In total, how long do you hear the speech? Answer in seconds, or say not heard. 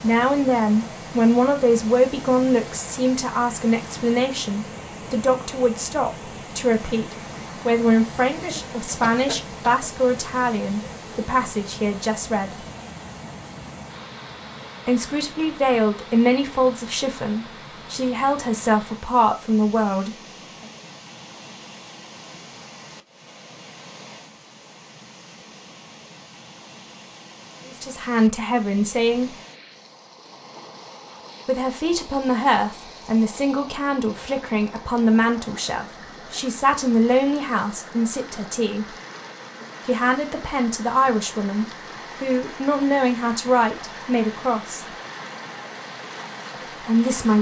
33 s.